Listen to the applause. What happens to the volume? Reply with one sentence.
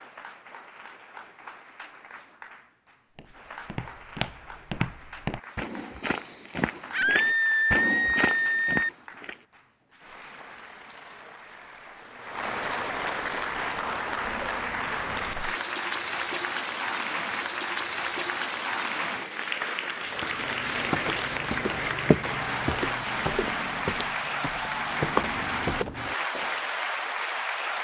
The loudness of the applause goes up.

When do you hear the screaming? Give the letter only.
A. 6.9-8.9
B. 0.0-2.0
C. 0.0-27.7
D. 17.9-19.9
A.